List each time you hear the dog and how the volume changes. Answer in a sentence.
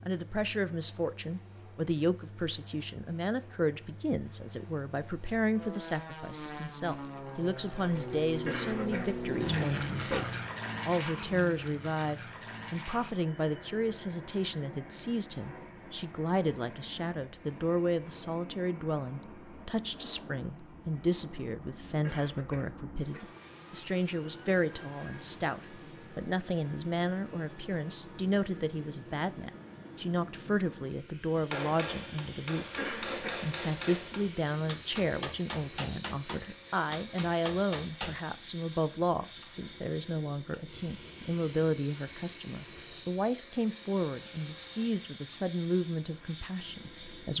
You can't hear the dog here.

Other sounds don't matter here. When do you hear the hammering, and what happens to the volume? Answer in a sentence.
The hammering can be heard from 31.5 to 38.1 s, at a steady volume.